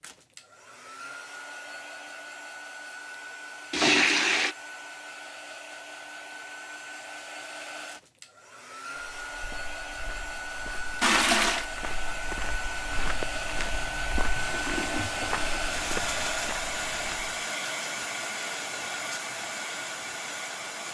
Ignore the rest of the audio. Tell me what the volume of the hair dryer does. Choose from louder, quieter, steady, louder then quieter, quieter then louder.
louder.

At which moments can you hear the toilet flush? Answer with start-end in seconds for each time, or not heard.
3.7-4.5, 11.0-11.7, 14.3-16.2.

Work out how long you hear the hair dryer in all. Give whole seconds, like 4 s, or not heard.
21 s.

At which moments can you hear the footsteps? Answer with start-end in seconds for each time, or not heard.
8.9-17.4.